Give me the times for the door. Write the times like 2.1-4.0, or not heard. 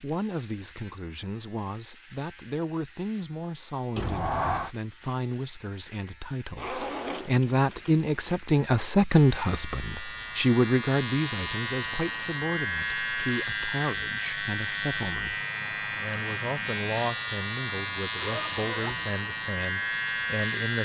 4.0-4.7.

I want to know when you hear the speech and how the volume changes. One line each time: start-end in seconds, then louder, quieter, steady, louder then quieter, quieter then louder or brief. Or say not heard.
0.0-20.8 louder then quieter.